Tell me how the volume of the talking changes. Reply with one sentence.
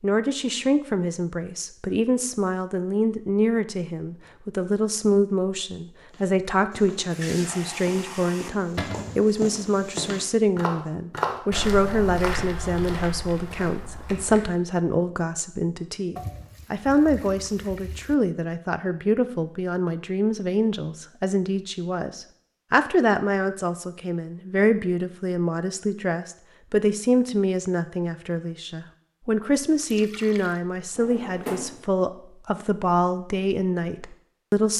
The volume of the talking stays about the same.